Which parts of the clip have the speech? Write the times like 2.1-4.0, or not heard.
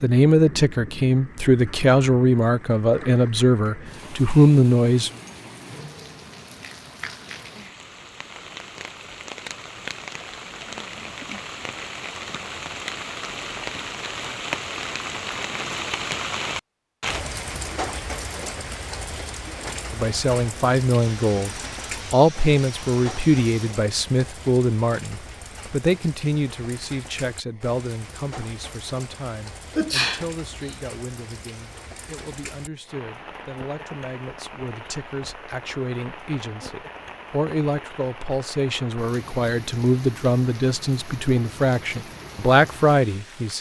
0.0-5.1, 19.9-43.5.